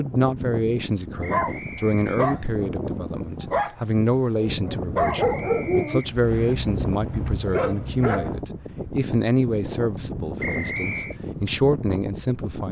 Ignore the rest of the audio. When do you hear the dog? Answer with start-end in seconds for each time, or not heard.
1.2-8.4.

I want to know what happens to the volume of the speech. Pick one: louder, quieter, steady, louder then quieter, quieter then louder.
steady.